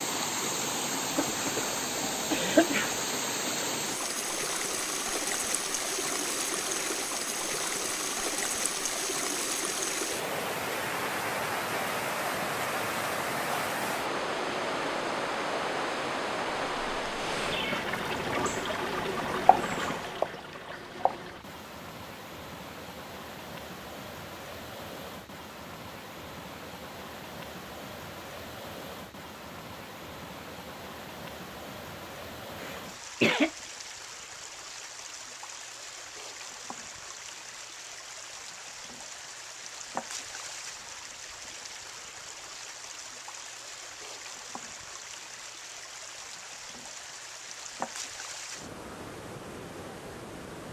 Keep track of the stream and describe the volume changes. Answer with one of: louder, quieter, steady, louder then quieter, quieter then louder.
quieter.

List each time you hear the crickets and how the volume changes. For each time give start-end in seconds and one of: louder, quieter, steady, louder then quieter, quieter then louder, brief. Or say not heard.
not heard.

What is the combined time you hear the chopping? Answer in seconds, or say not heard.
2 s.